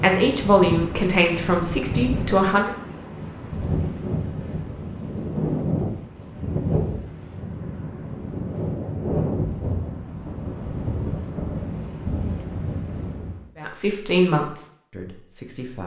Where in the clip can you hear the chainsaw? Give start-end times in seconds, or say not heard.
not heard.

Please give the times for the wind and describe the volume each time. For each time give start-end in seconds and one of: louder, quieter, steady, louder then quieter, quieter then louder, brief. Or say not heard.
0.0-13.4 steady.